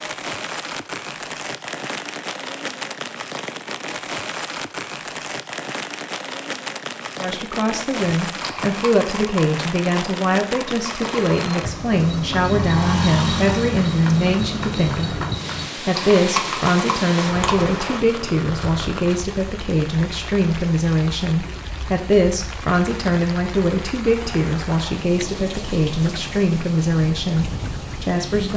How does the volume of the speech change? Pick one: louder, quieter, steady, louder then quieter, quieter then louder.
steady.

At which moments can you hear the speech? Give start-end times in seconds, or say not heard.
7.2-15.2, 15.8-28.5.